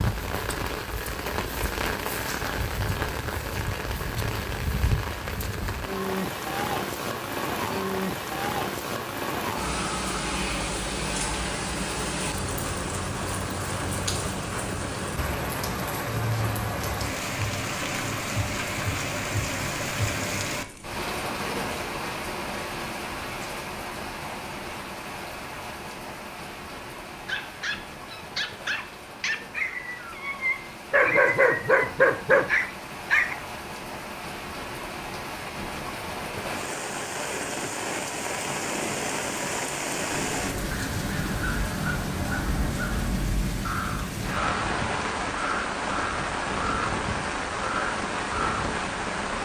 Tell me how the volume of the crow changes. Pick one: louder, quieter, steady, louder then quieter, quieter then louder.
steady.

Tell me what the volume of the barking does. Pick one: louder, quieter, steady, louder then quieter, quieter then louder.
louder.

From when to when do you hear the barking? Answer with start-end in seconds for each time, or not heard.
27.2-33.4.